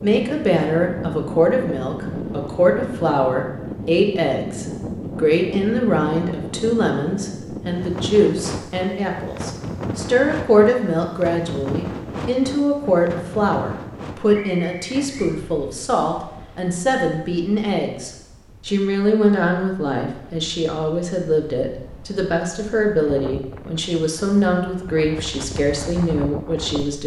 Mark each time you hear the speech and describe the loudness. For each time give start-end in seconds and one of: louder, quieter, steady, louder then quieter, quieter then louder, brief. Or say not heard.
0.0-27.0 steady.